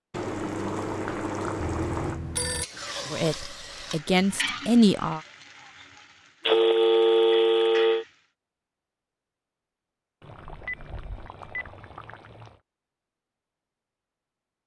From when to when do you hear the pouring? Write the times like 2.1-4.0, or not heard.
0.1-2.2, 6.4-7.9, 10.2-12.6.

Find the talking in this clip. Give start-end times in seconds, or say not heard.
3.1-5.2.